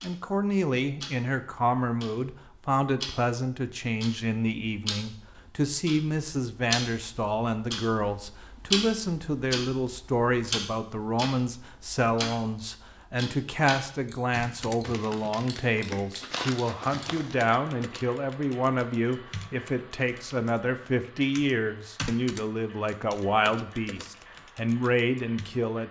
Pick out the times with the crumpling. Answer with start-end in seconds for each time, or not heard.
14.8-17.4.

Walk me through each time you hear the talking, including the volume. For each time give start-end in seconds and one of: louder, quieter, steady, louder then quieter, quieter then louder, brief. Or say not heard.
0.0-25.8 steady.